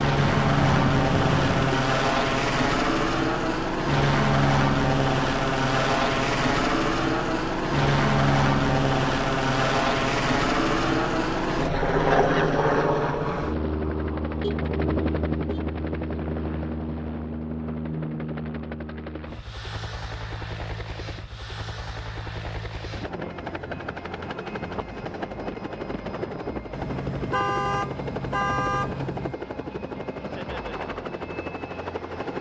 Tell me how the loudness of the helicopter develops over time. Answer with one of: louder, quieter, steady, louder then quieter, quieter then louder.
quieter.